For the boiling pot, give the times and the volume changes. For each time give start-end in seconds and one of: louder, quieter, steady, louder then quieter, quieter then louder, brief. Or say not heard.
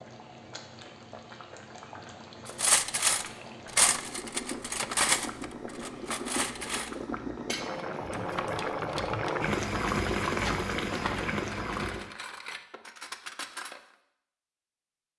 0.0-12.2 louder.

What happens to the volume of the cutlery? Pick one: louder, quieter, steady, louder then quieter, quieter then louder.
quieter.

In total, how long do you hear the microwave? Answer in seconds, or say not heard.
not heard.